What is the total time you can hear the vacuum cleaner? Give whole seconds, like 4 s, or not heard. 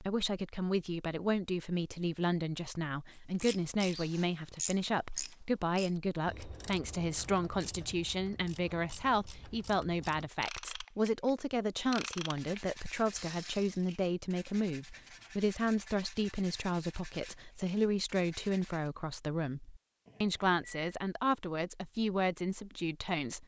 not heard.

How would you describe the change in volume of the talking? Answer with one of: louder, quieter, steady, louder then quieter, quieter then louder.
steady.